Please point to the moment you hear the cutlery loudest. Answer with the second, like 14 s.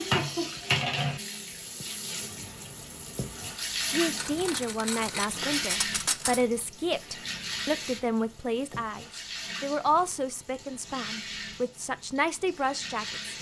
6 s.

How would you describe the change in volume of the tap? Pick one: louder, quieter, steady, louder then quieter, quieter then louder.
quieter.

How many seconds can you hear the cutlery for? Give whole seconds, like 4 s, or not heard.
2 s.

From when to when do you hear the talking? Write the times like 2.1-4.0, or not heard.
3.9-13.3.